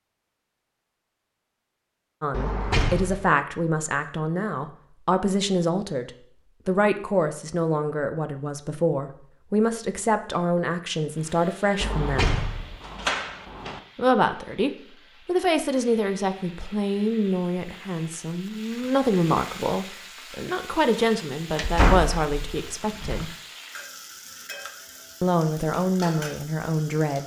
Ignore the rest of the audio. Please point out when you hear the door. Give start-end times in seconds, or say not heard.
2.3-3.3, 11.8-13.8, 21.6-23.2.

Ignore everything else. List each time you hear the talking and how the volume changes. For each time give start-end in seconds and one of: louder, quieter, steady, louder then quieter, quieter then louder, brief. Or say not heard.
2.2-12.3 steady
13.9-23.4 steady
25.2-27.2 brief.